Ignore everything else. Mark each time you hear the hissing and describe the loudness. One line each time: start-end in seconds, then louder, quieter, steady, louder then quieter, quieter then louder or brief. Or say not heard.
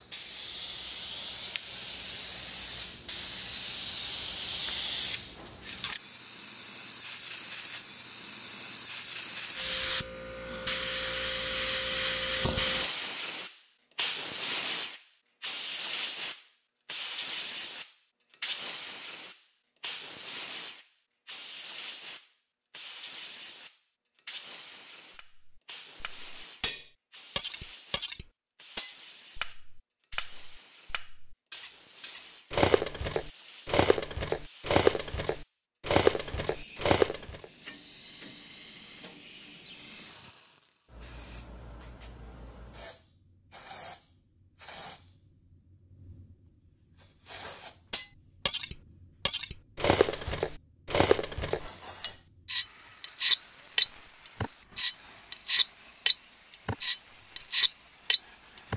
0.0-58.7 quieter.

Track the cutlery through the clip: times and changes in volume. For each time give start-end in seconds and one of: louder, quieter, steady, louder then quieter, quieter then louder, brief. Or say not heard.
25.1-37.5 louder
47.9-58.7 louder then quieter.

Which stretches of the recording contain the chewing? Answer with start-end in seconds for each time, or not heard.
not heard.